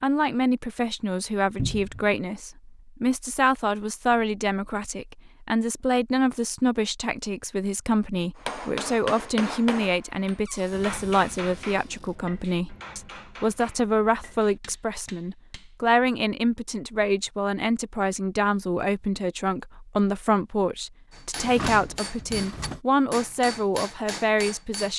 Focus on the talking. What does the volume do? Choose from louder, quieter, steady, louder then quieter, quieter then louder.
steady.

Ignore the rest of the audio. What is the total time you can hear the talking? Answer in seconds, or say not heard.
25 s.